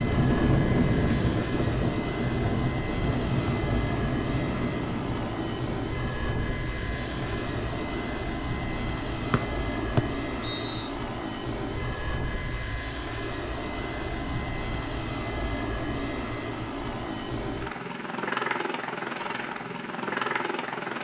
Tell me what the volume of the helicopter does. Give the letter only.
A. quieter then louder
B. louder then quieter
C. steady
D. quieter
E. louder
C.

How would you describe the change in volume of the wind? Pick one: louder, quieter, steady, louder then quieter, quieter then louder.
quieter.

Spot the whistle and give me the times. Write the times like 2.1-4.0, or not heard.
9.3-10.9.